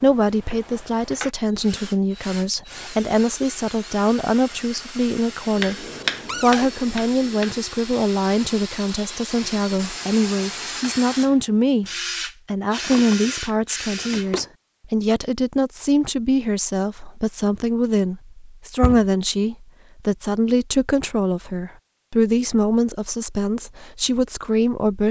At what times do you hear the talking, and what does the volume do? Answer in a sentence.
You can hear the talking from 0.0 to 25.0 s, at a steady volume.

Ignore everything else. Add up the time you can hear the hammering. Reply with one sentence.
You can hear the hammering for 2 seconds altogether.